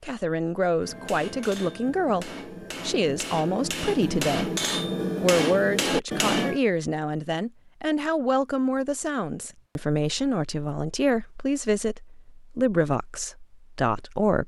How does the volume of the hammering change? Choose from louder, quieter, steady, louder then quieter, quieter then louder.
louder.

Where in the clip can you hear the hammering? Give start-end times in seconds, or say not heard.
0.8-6.6.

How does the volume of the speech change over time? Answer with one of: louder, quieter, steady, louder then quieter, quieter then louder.
steady.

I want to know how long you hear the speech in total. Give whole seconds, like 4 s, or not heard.
14 s.